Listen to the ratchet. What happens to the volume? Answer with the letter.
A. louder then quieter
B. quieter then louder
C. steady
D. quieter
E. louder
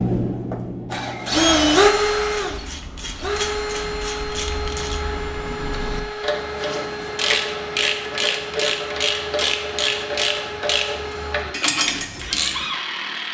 E.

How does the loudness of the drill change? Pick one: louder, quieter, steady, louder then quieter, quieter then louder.
quieter.